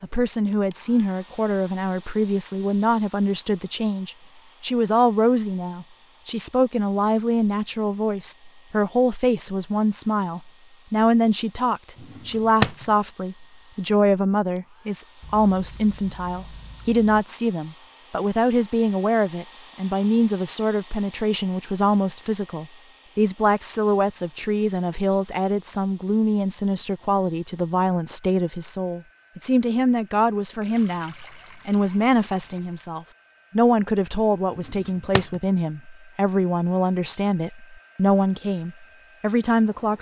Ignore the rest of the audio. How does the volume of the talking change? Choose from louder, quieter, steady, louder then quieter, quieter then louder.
steady.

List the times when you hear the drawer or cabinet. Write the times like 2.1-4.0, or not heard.
12.0-12.8, 34.5-35.4.